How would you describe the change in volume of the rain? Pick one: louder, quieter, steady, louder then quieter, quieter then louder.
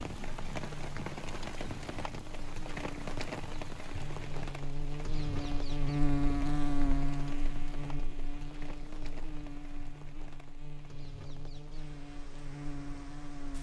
quieter.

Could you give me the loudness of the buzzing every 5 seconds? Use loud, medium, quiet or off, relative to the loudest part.
medium, loud, medium.